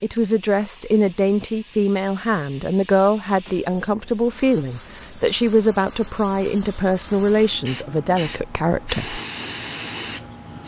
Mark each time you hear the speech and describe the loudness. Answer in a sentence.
The speech can be heard from 0.0 to 9.2 s, at a steady volume.